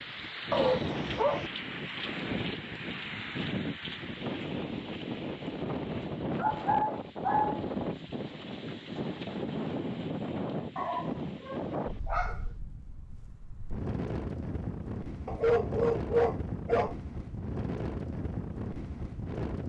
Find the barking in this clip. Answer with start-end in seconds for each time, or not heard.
0.5-1.5, 6.3-7.6, 10.8-12.4, 15.2-16.9.